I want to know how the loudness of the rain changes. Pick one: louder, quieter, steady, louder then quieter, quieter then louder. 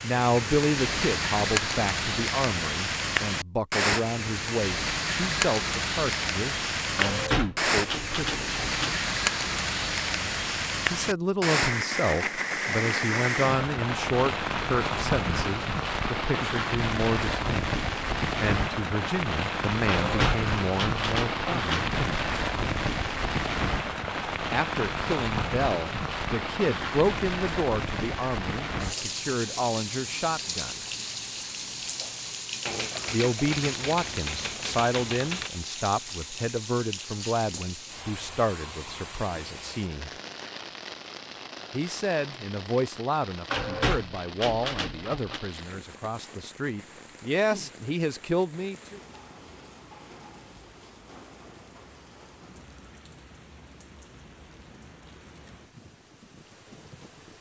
quieter.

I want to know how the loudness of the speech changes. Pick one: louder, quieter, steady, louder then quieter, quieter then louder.
steady.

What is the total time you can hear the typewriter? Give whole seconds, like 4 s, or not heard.
9 s.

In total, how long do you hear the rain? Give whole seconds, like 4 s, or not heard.
57 s.